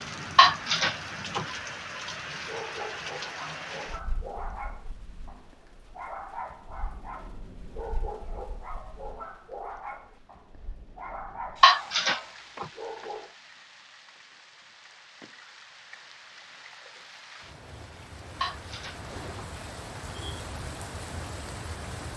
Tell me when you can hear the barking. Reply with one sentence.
You can hear the barking from 2.5 to 13.3 s.